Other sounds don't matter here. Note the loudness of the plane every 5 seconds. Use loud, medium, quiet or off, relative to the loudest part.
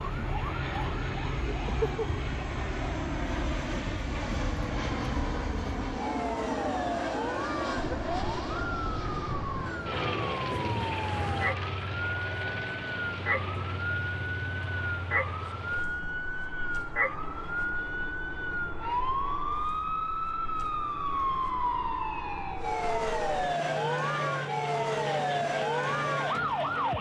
loud, loud, loud, medium, medium, loud.